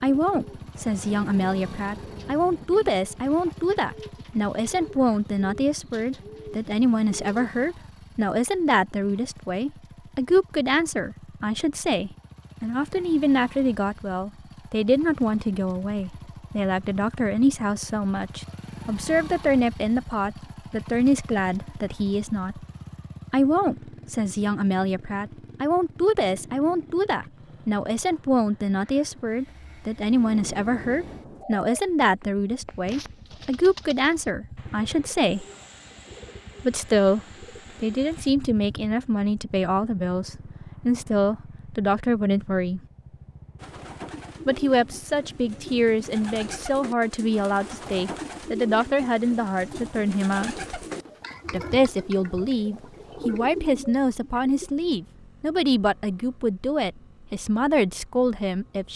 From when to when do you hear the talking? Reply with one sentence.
The talking can be heard from 0.0 to 22.6 s, from 23.3 to 35.5 s, from 36.6 to 37.2 s, from 37.8 to 42.8 s, from 44.5 to 50.5 s and from 51.5 to 58.9 s.